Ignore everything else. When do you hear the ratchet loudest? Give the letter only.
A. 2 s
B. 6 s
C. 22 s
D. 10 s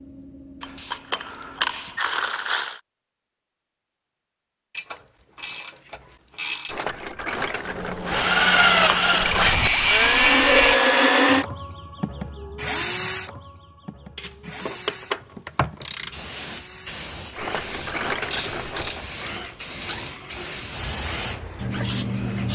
D.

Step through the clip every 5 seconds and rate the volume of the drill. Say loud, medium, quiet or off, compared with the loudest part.
off, loud, loud, quiet, quiet.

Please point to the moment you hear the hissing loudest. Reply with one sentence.
The loudest moment of the hissing is at 22 seconds.